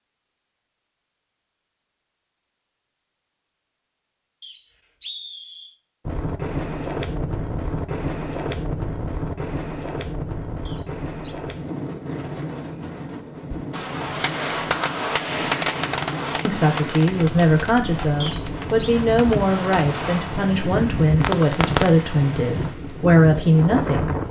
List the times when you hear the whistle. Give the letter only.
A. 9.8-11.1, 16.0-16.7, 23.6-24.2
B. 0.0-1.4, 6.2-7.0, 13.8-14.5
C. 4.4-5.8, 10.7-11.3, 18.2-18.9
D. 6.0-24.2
C.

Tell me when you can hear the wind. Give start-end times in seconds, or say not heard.
6.0-24.2.